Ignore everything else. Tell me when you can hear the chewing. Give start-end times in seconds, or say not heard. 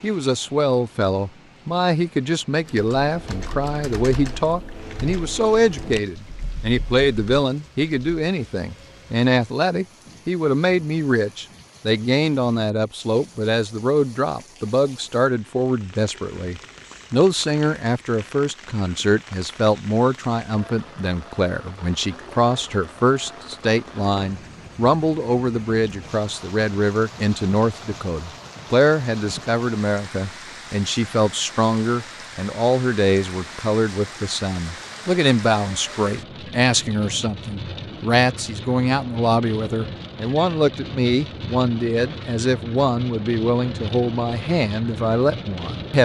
not heard.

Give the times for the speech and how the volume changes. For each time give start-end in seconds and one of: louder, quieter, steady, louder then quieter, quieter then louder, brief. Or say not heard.
0.0-46.0 steady.